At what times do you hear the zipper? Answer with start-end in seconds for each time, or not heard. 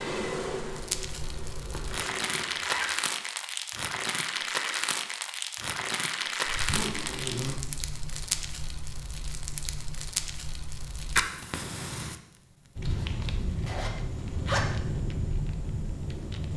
1.7-3.0, 6.5-7.6, 12.8-14.7.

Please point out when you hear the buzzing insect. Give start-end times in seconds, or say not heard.
0.0-2.5.